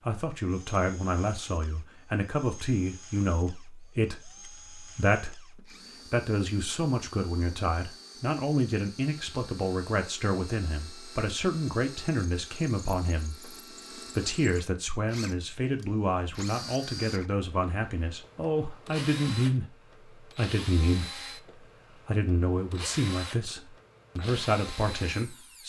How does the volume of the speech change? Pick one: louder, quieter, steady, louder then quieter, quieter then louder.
steady.